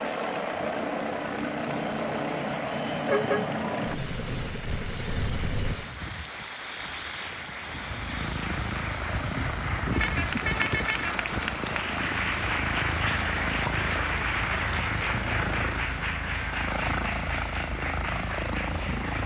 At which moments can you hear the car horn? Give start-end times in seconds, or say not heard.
3.0-4.5, 9.9-11.2.